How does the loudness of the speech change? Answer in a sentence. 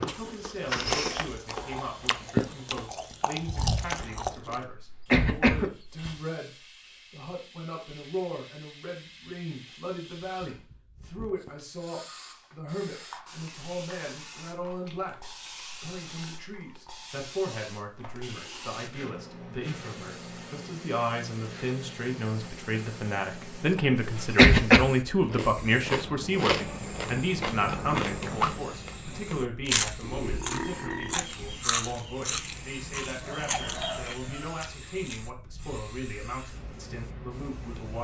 The loudness of the speech goes up, then down.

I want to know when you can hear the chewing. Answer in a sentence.
You can hear the chewing from 0.0 to 4.6 s and from 25.2 to 35.2 s.